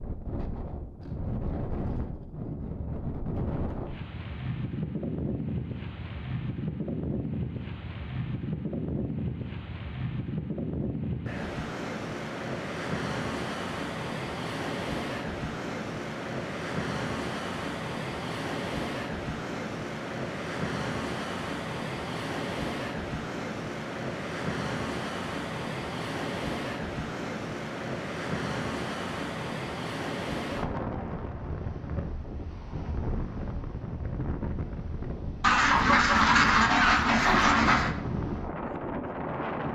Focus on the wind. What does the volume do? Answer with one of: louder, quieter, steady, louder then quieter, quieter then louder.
steady.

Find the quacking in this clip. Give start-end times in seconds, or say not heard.
35.4-38.0.